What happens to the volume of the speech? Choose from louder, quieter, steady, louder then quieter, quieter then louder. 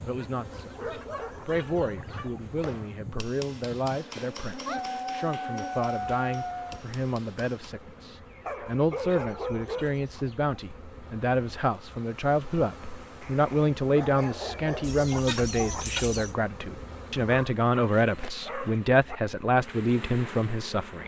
louder.